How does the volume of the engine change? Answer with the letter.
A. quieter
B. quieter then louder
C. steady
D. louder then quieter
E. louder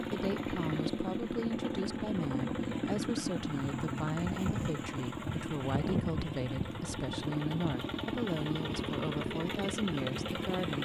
C.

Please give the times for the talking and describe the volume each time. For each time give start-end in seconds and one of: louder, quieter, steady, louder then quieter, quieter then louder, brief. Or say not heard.
0.0-10.8 steady.